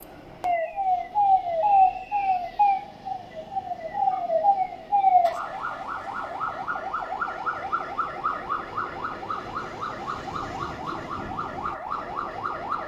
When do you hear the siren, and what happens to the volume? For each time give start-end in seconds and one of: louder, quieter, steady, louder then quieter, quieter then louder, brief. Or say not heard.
0.0-12.8 quieter.